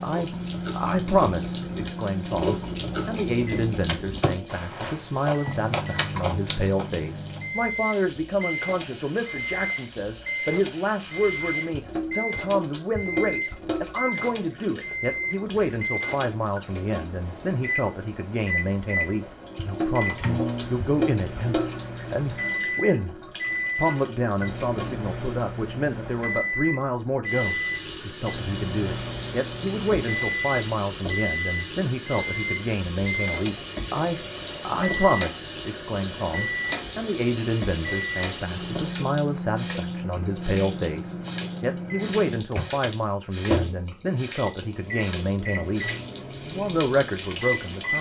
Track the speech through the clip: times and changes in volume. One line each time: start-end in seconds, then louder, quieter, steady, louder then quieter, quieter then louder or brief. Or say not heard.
0.0-47.9 steady.